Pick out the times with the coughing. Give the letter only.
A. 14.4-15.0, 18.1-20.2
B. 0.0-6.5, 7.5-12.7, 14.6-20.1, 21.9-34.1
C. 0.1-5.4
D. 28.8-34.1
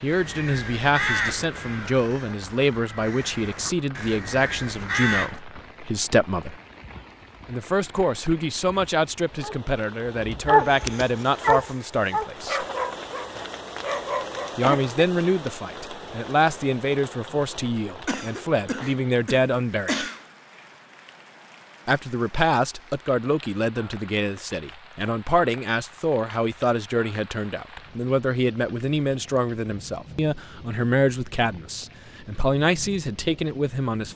A.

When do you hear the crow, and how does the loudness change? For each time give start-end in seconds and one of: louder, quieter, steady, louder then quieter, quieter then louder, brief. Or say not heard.
0.1-5.4 quieter then louder.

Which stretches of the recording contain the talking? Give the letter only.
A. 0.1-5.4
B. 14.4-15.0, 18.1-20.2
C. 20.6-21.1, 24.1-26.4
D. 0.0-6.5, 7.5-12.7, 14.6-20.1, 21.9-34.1
D.